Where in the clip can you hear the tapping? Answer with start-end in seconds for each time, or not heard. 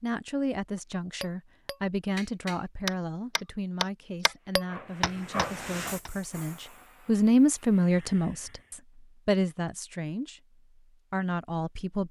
1.2-6.1.